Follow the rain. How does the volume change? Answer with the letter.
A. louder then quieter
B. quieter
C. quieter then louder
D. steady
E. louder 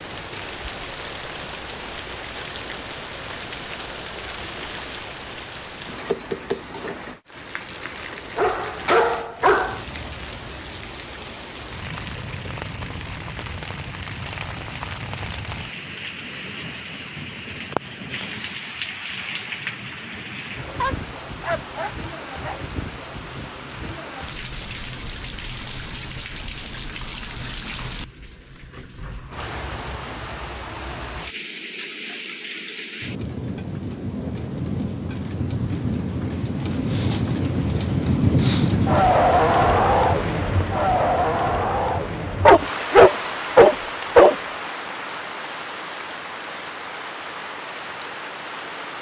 E.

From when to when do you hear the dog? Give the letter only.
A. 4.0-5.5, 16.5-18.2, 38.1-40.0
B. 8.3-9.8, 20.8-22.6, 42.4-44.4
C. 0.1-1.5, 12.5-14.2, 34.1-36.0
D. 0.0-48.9
B.